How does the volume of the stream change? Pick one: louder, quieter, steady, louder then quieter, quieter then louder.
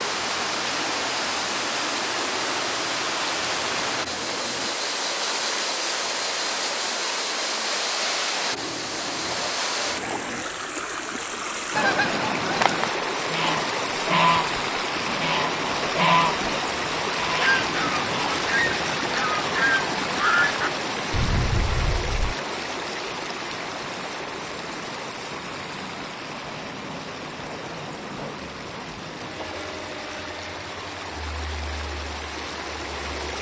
quieter.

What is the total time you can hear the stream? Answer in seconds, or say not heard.
33 s.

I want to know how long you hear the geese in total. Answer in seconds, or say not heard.
10 s.